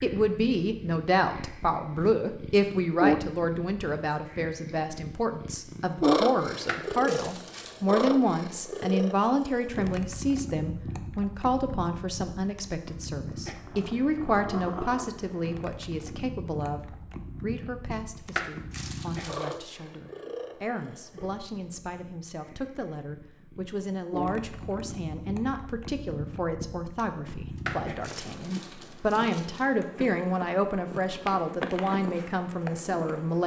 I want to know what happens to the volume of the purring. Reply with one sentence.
The volume of the purring goes down.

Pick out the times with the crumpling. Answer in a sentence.
You can hear the crumpling from 6.6 to 7.8 s, from 18.2 to 19.6 s and from 27.6 to 29.6 s.